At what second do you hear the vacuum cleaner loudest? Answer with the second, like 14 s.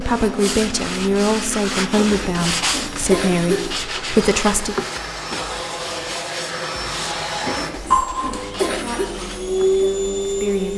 10 s.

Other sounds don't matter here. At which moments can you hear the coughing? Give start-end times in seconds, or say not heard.
1.9-3.7, 7.4-9.1.